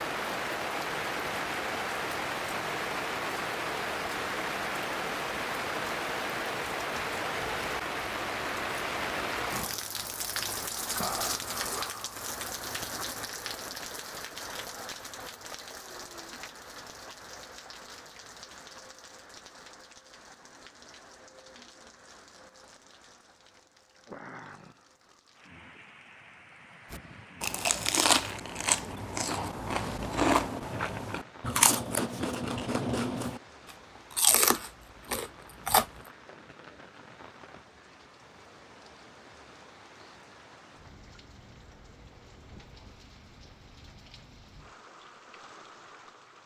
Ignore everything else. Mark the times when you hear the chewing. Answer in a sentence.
You can hear the chewing from 26.9 to 33.4 s and from 34.1 to 35.9 s.